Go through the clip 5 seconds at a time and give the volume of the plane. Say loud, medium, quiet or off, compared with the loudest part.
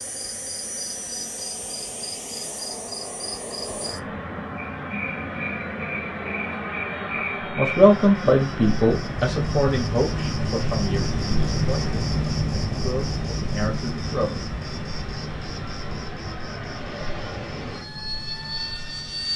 loud, loud, medium, loud.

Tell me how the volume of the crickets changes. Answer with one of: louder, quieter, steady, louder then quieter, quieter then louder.
louder then quieter.